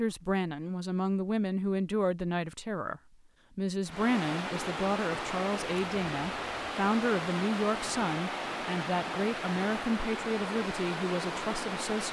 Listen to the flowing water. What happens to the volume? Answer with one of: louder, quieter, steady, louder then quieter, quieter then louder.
steady.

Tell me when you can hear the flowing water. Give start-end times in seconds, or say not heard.
3.9-12.0.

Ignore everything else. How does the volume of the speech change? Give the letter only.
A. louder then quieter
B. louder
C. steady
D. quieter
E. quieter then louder
C.